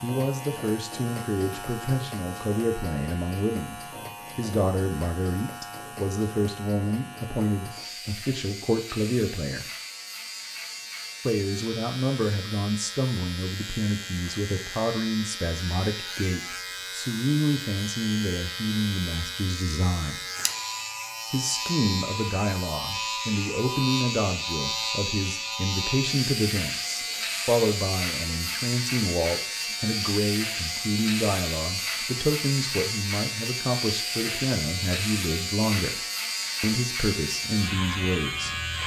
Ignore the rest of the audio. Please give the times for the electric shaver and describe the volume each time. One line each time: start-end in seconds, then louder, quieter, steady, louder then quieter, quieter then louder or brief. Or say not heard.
0.0-38.8 louder.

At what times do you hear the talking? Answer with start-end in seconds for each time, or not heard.
0.0-9.7, 11.2-20.2, 21.3-36.0, 36.6-38.5.